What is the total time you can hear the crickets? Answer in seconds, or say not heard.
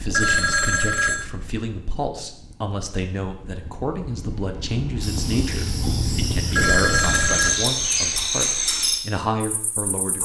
5 s.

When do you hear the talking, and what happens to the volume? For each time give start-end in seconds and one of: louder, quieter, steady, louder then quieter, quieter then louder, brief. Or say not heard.
0.0-10.1 steady.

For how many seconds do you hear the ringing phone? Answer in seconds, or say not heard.
2 s.